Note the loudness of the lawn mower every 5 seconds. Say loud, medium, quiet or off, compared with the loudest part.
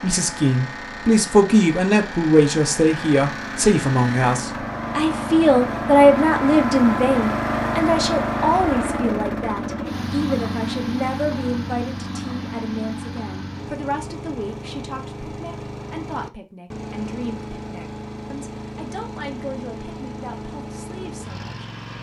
medium, loud, medium, medium, medium.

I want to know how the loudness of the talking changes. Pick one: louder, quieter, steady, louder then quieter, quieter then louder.
quieter.